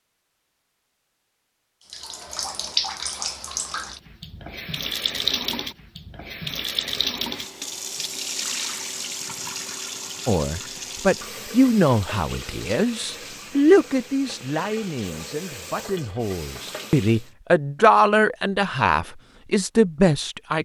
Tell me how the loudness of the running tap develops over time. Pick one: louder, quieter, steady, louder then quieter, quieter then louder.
quieter.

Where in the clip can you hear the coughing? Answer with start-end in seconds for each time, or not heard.
not heard.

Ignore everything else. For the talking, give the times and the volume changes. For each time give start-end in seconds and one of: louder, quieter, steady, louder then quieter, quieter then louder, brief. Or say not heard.
10.2-20.6 quieter then louder.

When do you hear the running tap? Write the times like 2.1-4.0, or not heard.
1.9-17.3.